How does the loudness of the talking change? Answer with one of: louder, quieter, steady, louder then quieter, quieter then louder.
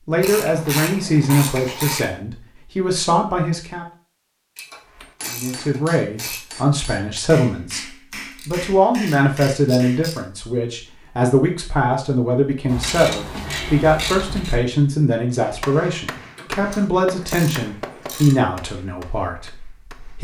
steady.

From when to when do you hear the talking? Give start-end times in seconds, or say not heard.
0.1-3.9, 5.3-20.1.